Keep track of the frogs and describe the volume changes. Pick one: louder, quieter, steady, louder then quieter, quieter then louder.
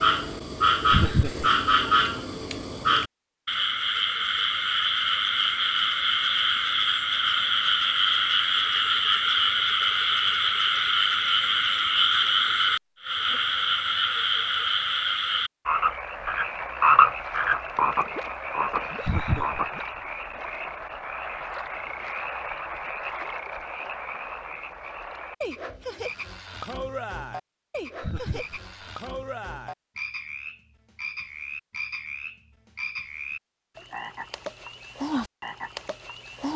quieter.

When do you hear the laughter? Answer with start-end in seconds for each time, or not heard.
0.8-1.5, 18.9-19.6, 27.9-28.6.